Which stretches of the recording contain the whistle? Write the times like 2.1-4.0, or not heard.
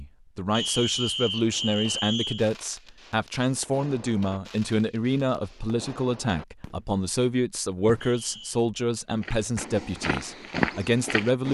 0.5-2.5, 8.0-8.6.